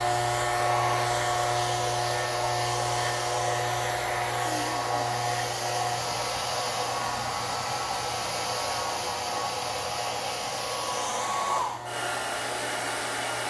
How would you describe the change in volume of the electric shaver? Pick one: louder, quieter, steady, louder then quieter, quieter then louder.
quieter.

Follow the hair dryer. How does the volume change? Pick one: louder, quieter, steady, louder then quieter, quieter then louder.
steady.